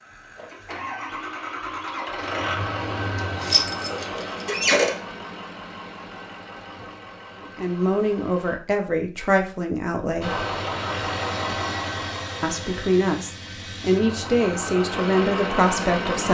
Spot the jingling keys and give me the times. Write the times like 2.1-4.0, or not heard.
3.1-4.9.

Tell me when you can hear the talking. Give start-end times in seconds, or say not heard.
7.4-10.4, 12.4-16.2.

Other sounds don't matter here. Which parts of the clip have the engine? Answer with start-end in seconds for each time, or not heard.
0.0-8.6, 10.2-16.2.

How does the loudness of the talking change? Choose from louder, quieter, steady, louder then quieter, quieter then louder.
steady.